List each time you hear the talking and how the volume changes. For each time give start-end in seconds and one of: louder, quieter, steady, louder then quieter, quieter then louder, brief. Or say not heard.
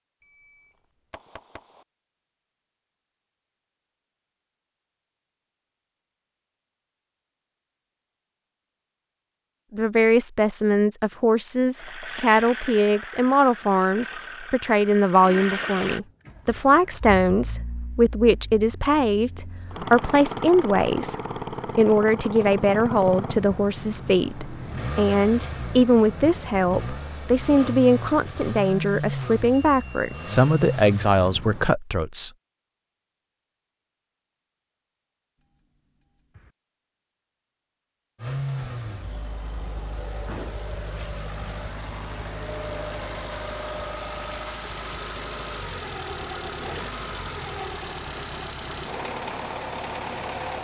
9.7-21.1 steady
21.8-32.3 steady.